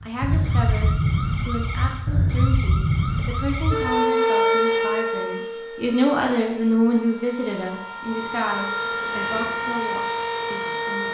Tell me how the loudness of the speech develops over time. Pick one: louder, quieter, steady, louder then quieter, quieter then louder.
louder then quieter.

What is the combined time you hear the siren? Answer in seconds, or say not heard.
11 s.